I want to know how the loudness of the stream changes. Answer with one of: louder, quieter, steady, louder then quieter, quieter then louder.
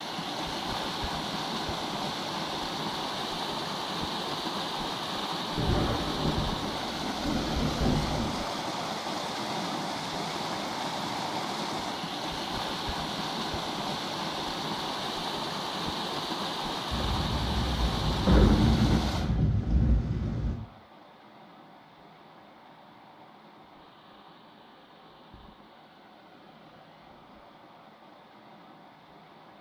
quieter.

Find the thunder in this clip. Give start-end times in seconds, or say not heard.
5.5-8.3, 16.9-20.6.